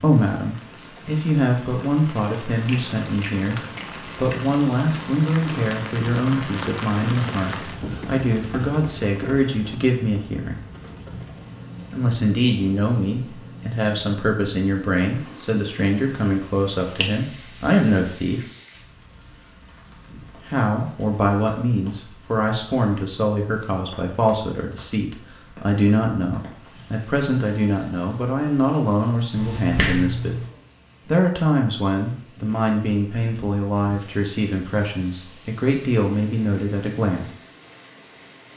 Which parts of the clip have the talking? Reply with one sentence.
The talking can be heard from 0.0 to 10.7 s, from 11.9 to 18.4 s, from 20.4 to 30.4 s and from 31.1 to 37.3 s.